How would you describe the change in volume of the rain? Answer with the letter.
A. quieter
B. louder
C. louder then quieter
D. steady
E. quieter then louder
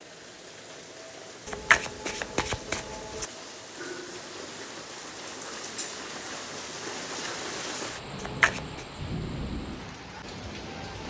B.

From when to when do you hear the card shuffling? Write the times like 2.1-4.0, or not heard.
1.4-3.3, 8.2-8.8.